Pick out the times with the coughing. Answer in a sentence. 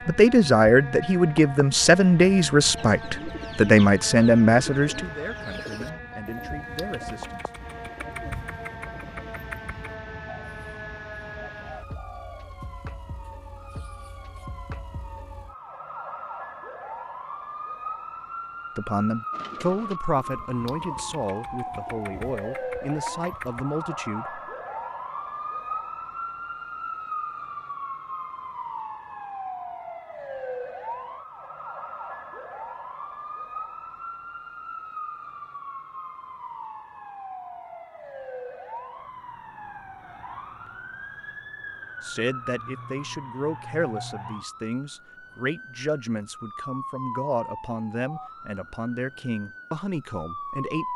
The coughing can't be heard in this clip.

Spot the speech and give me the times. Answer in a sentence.
You can hear the speech from 0.1 to 7.5 s, from 18.8 to 24.4 s and from 42.0 to 50.9 s.